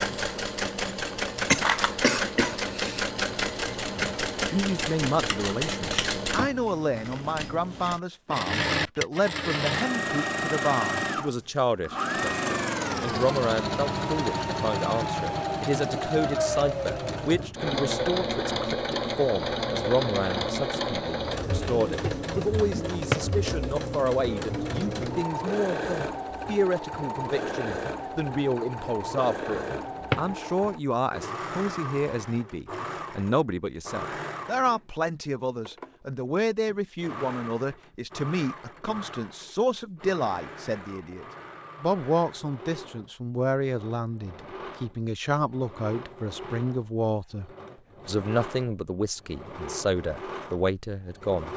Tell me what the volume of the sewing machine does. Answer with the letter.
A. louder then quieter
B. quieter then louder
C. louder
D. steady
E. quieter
E.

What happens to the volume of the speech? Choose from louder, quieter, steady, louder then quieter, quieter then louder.
steady.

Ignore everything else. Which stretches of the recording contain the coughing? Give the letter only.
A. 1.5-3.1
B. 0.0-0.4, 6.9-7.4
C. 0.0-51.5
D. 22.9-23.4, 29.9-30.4
A.